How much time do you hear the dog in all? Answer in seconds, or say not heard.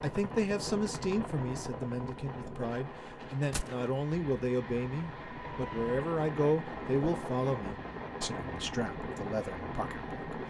not heard.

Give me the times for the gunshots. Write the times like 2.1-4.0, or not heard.
3.5-4.0.